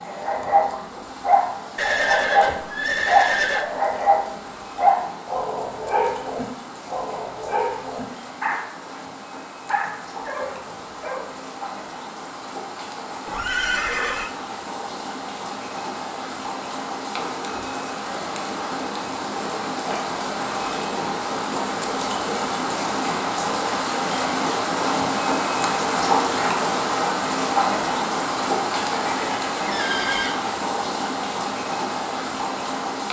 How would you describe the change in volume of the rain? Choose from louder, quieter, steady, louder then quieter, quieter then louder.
louder.